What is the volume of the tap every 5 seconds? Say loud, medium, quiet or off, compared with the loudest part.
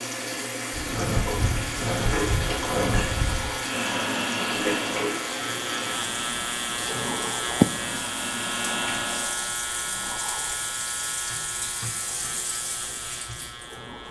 loud, medium, medium.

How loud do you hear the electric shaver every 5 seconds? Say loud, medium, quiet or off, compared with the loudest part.
medium, loud, medium.